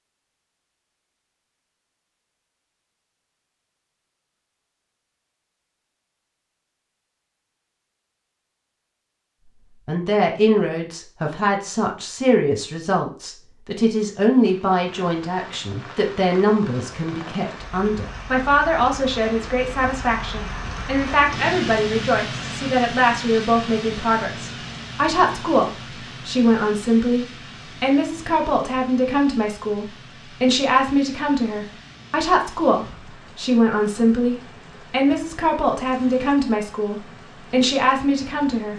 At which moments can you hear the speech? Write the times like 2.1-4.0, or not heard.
9.8-38.7.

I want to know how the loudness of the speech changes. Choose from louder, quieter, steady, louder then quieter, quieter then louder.
steady.